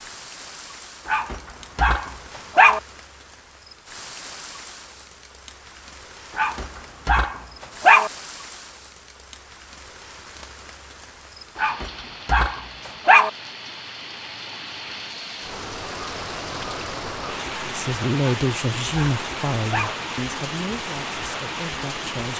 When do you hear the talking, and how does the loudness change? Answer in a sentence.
The talking can be heard from 17.6 to 22.3 s, getting quieter.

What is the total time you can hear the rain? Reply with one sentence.
The rain can be heard for 22 seconds in total.